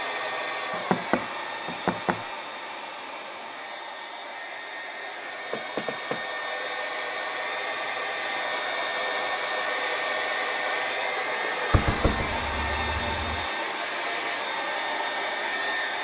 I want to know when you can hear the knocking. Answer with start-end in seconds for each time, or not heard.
0.7-2.2, 5.5-6.2, 11.7-13.4.